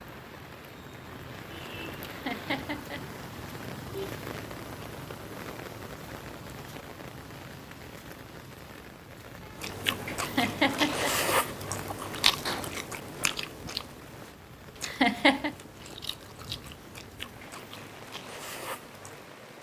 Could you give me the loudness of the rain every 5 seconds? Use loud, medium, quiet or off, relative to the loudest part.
loud, loud, medium, medium.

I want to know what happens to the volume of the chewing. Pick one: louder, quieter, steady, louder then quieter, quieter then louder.
quieter.